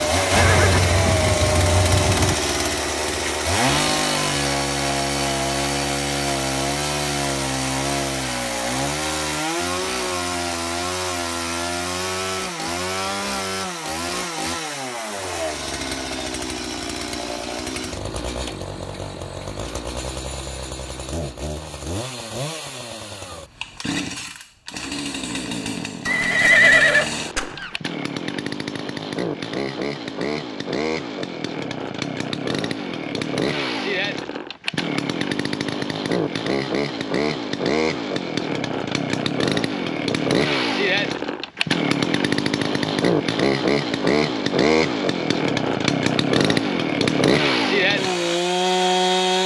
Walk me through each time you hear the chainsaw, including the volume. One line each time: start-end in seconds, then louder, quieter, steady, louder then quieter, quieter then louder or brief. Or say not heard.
0.0-49.4 quieter then louder.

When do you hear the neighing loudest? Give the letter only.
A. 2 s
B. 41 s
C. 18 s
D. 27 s
D.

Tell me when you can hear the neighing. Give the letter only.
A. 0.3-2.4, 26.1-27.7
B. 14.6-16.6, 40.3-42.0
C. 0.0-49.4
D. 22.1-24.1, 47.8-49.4
A.